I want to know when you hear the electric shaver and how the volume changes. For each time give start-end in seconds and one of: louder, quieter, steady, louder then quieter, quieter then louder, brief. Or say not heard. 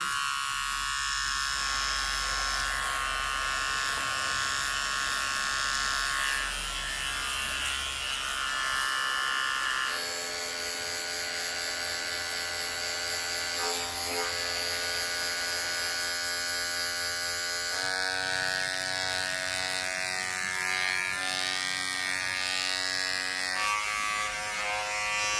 0.0-25.3 steady.